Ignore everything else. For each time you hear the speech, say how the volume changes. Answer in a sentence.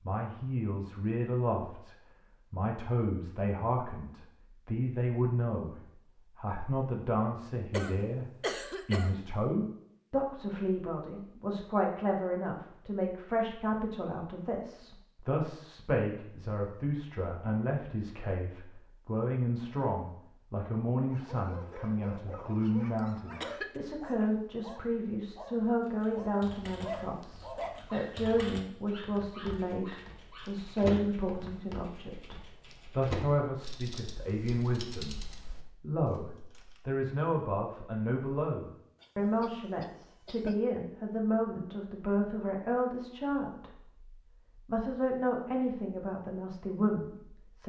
You can hear the speech from 0.0 to 47.6 s, at a steady volume.